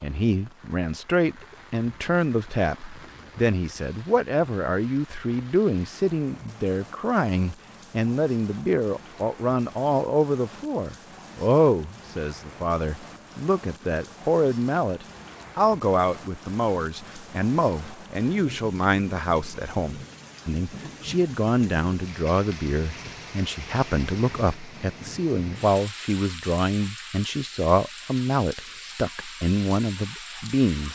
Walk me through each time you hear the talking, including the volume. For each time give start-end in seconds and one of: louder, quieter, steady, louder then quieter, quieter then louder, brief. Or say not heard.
0.0-30.9 steady.